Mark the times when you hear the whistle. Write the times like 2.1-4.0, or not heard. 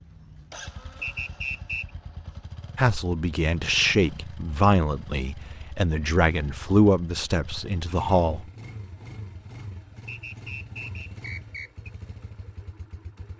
1.0-1.9, 10.1-11.9.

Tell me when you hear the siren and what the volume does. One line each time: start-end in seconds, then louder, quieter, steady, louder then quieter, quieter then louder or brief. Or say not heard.
not heard.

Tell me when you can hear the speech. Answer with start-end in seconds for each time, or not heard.
2.8-8.4.